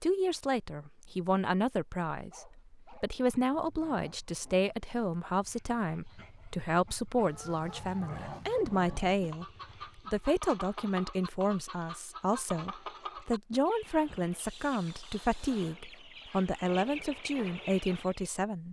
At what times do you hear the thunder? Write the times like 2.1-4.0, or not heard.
not heard.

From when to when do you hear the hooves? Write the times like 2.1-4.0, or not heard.
not heard.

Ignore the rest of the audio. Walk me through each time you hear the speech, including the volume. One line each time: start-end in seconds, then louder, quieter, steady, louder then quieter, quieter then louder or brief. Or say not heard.
0.0-18.6 steady.